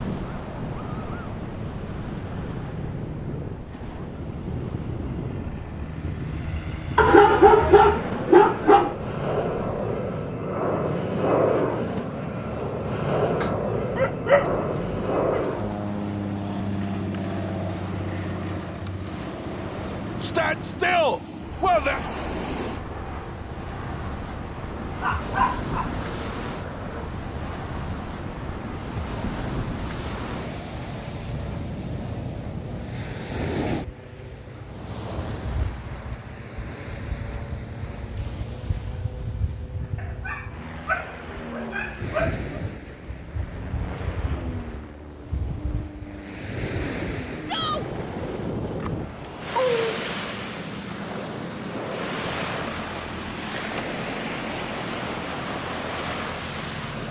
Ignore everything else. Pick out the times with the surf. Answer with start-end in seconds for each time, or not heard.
0.0-57.0.